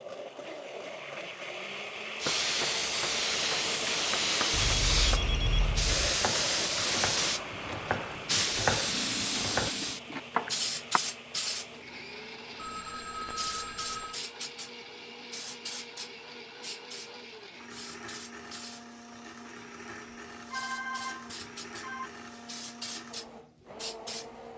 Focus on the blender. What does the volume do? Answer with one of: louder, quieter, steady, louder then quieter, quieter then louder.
quieter.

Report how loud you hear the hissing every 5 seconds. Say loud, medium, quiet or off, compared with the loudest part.
loud, loud, medium, quiet, quiet.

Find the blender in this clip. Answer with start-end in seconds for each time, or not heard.
0.0-24.5.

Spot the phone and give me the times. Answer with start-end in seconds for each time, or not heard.
4.5-6.2, 12.6-14.2, 20.1-22.1.